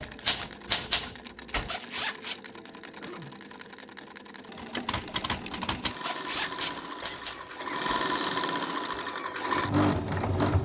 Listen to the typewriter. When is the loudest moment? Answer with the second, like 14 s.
1 s.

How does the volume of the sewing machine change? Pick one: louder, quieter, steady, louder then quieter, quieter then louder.
louder.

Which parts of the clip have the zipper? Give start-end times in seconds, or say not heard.
1.5-2.4, 5.8-7.6.